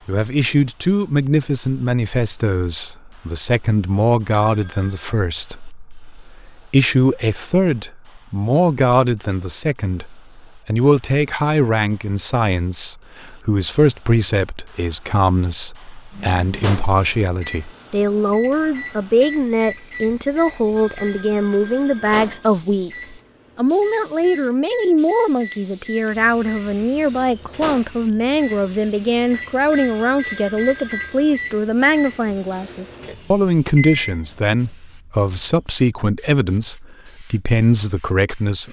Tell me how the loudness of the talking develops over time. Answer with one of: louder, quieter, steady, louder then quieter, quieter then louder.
steady.